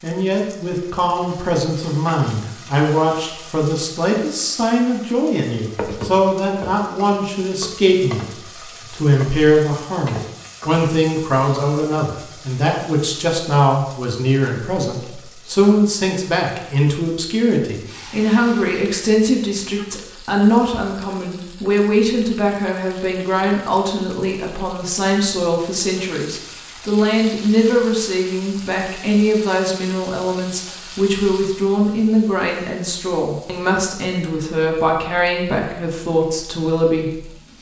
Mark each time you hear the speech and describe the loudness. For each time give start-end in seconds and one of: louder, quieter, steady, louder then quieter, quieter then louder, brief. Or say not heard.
0.0-37.2 steady.